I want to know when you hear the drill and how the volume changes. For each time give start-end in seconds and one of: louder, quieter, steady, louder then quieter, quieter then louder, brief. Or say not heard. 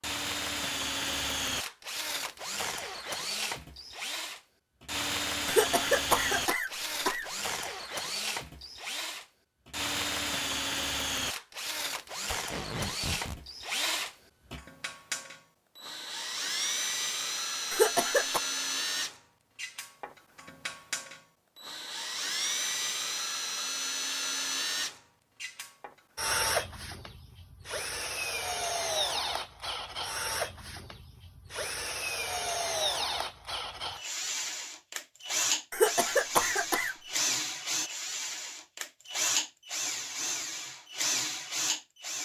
0.0-42.2 steady.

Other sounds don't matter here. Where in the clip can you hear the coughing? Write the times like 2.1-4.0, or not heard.
5.5-7.7, 17.7-18.4, 35.7-37.0.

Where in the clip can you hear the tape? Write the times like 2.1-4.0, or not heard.
12.3-13.4.